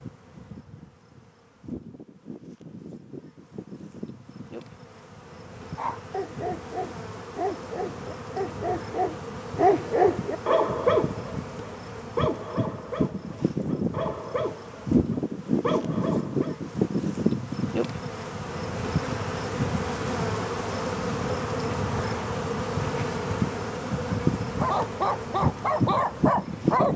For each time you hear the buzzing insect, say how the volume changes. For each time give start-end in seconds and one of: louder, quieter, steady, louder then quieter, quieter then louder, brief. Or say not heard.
0.0-26.9 louder.